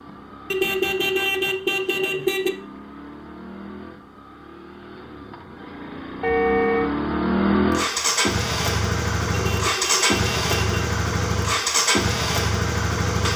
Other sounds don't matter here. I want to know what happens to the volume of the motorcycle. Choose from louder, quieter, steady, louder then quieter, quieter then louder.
louder.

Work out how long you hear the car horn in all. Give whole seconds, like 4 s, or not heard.
4 s.